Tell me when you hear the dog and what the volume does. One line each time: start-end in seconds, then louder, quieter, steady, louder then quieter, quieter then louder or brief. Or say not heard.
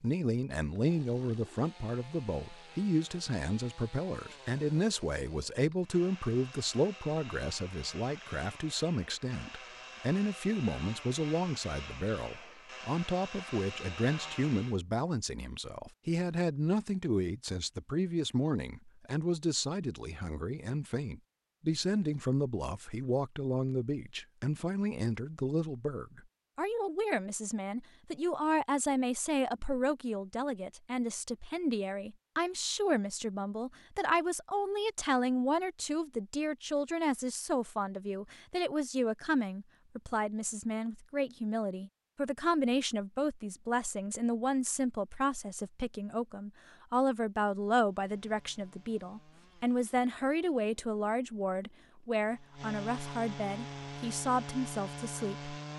not heard.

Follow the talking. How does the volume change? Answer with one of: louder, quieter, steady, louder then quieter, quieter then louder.
steady.